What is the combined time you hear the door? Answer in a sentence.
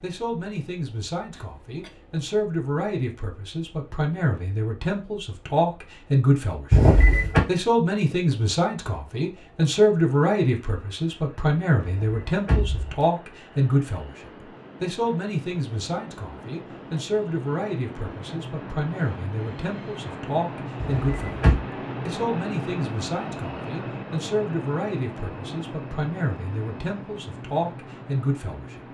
You can hear the door for 3 seconds altogether.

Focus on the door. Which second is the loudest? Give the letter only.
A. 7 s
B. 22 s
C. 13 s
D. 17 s
A.